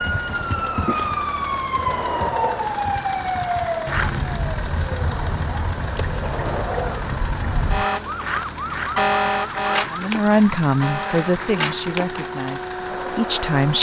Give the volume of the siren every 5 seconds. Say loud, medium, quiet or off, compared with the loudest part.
loud, loud, medium.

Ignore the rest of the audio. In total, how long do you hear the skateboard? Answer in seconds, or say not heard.
14 s.